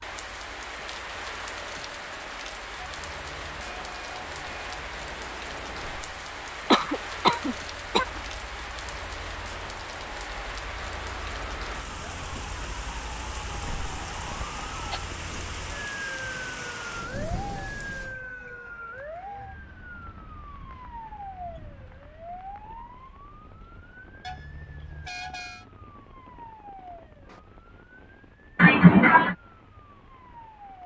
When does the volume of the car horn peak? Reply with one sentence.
The volume of the car horn peaks at 25 seconds.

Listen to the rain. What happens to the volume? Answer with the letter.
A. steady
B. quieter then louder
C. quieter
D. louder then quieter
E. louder
C.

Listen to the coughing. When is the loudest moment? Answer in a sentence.
The loudest moment of the coughing is at 29 seconds.